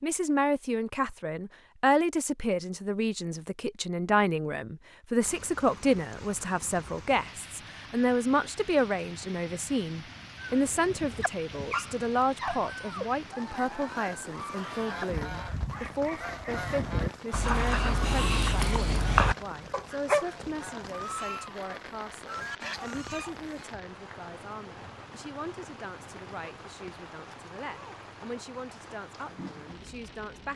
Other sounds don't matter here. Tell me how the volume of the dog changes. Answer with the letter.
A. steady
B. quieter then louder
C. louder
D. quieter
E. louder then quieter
C.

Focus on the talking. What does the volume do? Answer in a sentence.
The loudness of the talking goes down.